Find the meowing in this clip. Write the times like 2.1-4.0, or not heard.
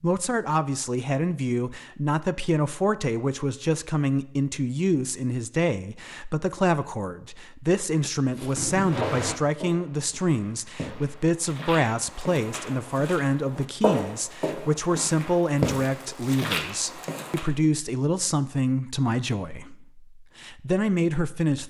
8.6-9.4.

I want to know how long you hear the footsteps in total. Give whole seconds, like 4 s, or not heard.
9 s.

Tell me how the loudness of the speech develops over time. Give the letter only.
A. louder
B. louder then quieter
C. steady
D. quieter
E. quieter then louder
C.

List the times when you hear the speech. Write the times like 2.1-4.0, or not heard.
0.0-21.6.